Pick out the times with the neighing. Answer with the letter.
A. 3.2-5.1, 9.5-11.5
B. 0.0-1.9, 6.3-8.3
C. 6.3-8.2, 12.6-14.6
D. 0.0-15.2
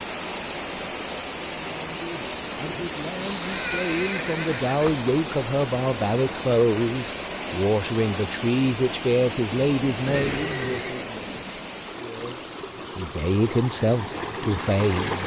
A.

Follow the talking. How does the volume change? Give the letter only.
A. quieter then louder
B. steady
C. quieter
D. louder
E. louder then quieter
D.